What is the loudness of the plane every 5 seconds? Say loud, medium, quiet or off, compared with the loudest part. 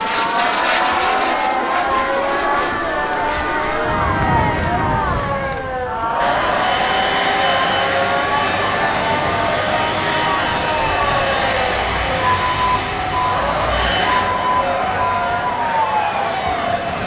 loud, loud, loud, medium.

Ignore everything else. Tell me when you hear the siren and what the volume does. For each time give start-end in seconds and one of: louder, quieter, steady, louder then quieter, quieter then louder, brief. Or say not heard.
0.0-17.0 steady.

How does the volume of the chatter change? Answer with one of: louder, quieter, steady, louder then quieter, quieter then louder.
steady.